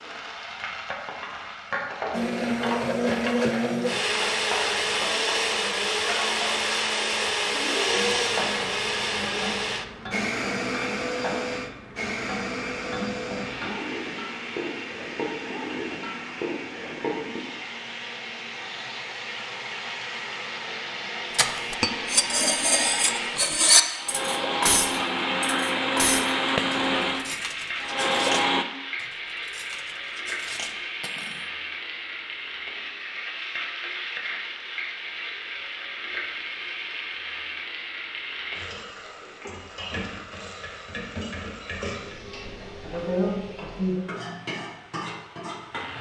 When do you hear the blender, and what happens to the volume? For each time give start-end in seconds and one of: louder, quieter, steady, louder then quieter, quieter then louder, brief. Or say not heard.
2.1-28.6 quieter then louder.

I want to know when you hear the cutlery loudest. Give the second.
24 s.